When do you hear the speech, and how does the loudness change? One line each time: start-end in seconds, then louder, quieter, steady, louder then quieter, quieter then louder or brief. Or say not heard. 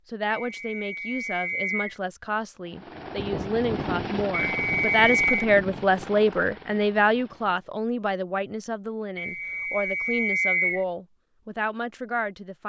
0.1-12.6 louder then quieter.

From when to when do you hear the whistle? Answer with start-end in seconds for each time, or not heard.
0.3-1.9, 4.3-5.5, 9.2-10.8.